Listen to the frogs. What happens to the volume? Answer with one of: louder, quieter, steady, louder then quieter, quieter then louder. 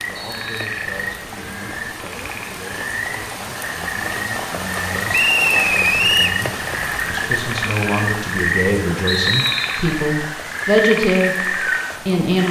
louder.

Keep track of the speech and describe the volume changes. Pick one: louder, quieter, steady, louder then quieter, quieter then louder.
louder.